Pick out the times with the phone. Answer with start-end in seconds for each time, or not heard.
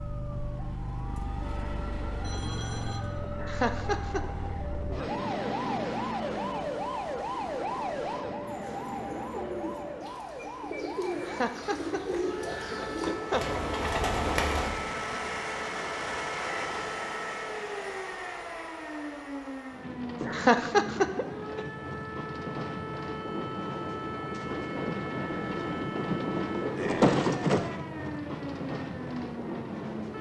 2.2-3.0.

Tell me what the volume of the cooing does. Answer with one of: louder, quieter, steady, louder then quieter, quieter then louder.
louder.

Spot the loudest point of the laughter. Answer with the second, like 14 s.
21 s.